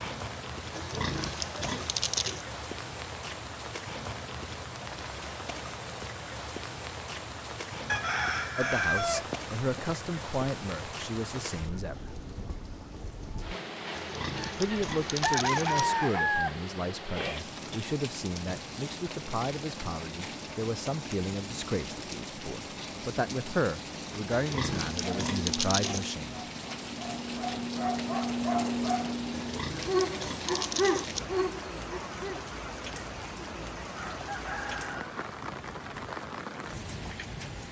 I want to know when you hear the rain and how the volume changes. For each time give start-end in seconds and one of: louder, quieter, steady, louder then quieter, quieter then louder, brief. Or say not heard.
0.0-37.6 steady.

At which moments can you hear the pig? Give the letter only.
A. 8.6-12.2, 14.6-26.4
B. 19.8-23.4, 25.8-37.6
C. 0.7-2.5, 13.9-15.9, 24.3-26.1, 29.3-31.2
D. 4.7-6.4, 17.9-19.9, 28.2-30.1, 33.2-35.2
C.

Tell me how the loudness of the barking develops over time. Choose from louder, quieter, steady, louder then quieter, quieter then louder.
louder.